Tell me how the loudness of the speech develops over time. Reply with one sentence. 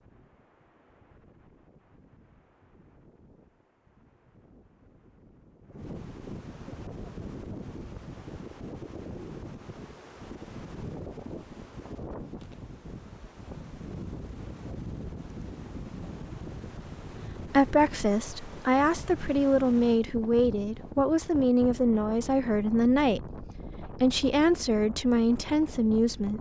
The loudness of the speech stays about the same.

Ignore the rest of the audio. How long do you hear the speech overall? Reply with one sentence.
The speech can be heard for 9 seconds in total.